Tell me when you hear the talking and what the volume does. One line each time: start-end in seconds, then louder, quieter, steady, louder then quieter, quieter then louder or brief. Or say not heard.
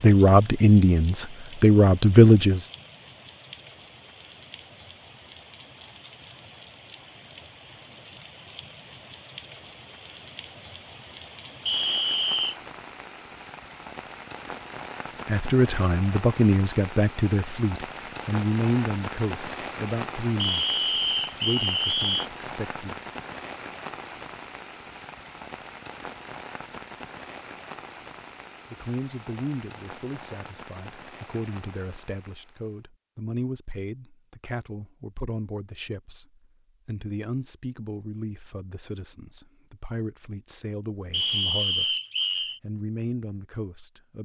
0.0-2.6 brief
15.2-23.1 quieter
28.7-42.0 steady
42.6-44.2 brief.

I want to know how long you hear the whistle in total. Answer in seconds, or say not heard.
4 s.